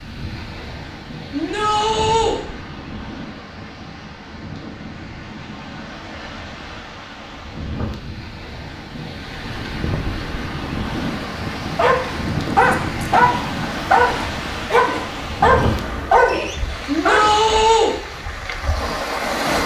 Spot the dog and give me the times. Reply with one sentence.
The dog can be heard from 11.8 to 17.6 s.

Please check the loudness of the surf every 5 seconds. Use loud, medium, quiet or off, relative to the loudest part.
medium, medium, loud, loud.